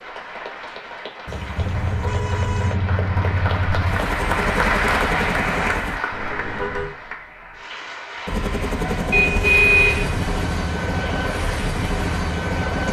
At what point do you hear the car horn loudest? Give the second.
10 s.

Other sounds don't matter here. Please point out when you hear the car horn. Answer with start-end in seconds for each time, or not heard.
1.2-2.8, 6.1-7.0, 9.1-10.2.